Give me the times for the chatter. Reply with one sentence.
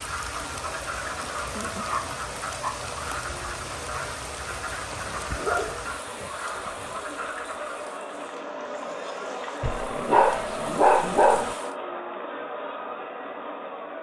The chatter can be heard from 0.2 to 13.9 s.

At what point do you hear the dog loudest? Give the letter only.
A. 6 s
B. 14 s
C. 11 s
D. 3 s
C.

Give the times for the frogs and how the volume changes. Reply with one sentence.
You can hear the frogs from 0.0 to 7.9 s, at a steady volume.